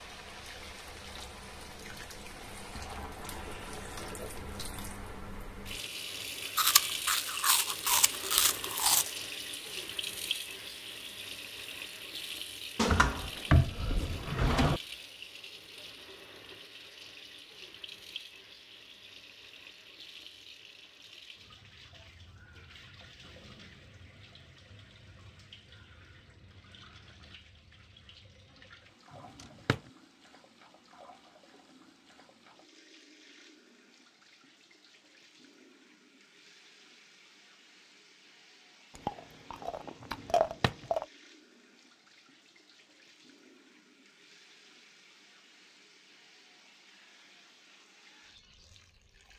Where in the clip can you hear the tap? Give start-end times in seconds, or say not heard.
0.0-49.3.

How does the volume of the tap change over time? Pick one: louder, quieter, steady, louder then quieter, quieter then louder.
quieter.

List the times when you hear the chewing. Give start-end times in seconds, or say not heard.
6.5-9.1, 39.0-41.0.